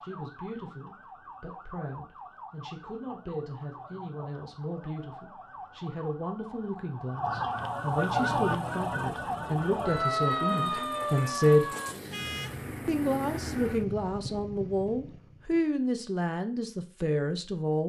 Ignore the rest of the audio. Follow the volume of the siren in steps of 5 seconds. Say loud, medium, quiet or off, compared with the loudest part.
quiet, loud, loud, off.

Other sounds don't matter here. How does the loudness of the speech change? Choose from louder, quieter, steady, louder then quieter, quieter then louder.
louder.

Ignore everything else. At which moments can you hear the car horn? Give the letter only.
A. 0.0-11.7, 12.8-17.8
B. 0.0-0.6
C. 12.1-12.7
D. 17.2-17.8
C.